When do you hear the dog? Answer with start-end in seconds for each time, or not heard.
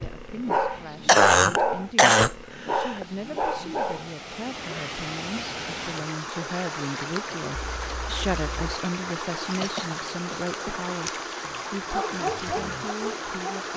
0.0-4.8, 11.8-13.7.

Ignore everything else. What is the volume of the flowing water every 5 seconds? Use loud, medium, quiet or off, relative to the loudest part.
medium, loud, loud.